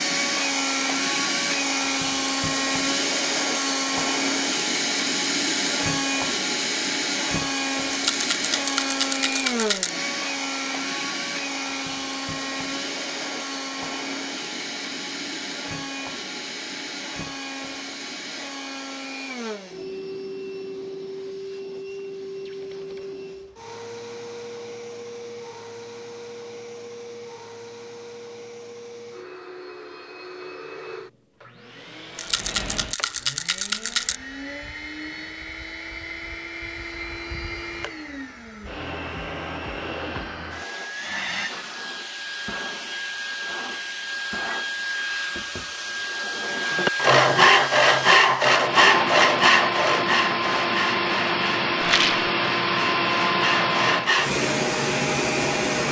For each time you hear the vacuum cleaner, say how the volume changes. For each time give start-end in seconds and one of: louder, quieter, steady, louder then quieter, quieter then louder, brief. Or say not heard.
0.0-55.8 quieter then louder.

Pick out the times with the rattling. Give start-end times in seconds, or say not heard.
7.9-9.9, 32.1-34.1, 51.8-52.3.